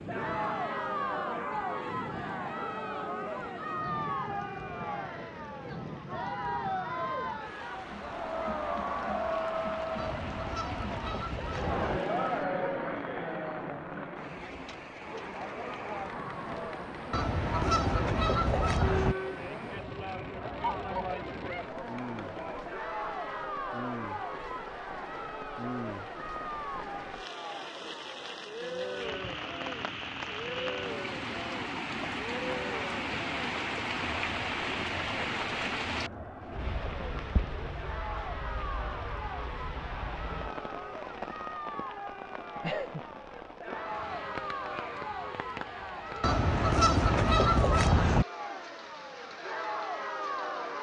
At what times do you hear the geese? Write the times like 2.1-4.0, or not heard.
9.9-12.0, 17.1-19.1, 46.2-48.2.